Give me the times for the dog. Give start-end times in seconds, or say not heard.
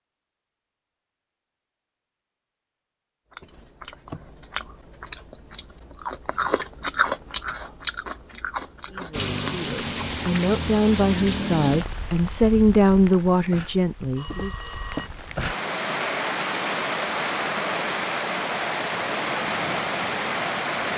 not heard.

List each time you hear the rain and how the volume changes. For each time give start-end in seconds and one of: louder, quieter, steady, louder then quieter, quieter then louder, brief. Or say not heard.
9.1-20.9 quieter then louder.